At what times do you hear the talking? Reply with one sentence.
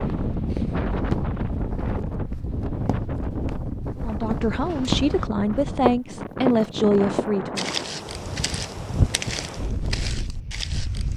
The talking can be heard from 4.0 to 7.7 s.